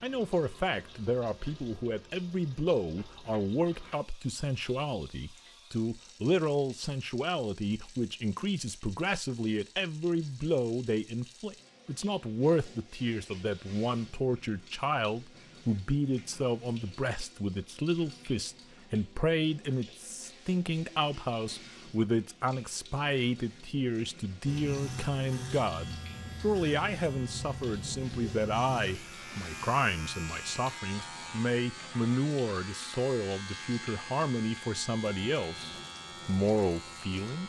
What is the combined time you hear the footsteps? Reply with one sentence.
You can't hear the footsteps here.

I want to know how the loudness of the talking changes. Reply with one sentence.
The volume of the talking stays about the same.